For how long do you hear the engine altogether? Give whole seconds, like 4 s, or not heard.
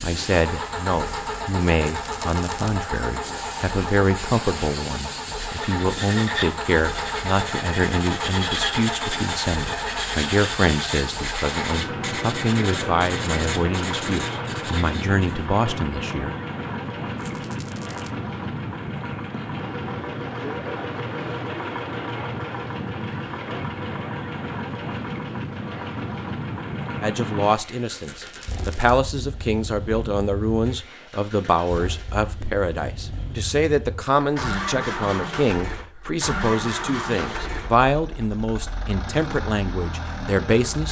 41 s.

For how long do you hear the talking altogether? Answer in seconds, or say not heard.
30 s.